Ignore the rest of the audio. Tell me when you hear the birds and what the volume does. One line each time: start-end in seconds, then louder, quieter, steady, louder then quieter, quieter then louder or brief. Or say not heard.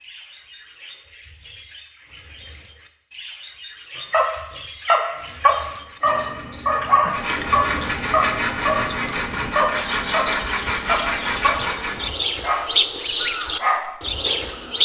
0.0-14.8 louder.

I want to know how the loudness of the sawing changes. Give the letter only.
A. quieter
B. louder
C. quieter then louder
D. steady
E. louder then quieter
B.